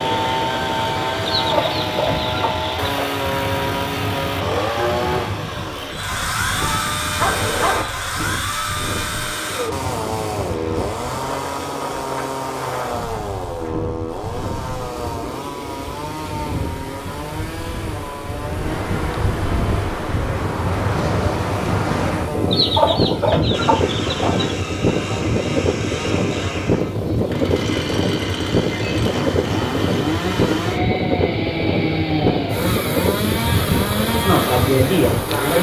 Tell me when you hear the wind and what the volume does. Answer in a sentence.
The wind can be heard from 0.0 to 35.5 s, getting louder.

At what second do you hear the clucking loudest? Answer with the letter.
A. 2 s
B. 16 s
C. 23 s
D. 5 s
C.